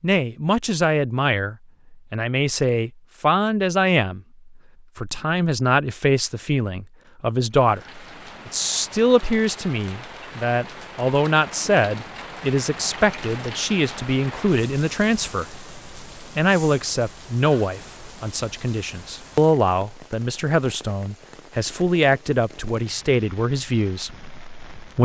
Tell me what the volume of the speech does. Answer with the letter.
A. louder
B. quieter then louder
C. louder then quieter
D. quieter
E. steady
E.